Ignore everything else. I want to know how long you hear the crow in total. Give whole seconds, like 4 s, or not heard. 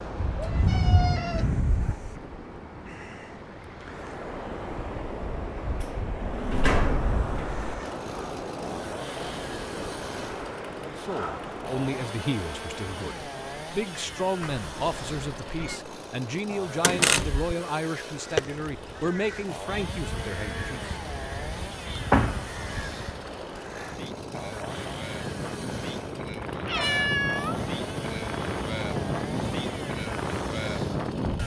5 s.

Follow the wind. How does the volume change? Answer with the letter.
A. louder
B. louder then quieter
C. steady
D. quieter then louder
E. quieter
D.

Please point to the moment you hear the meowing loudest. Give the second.
27 s.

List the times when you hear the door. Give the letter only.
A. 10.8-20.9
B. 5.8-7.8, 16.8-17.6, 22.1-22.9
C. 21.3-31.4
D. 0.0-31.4
B.